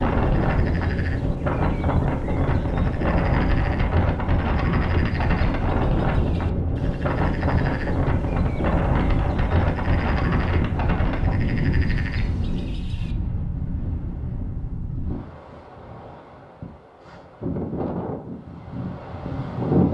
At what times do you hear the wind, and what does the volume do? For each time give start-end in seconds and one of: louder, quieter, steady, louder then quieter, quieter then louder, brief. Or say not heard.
0.0-19.8 quieter.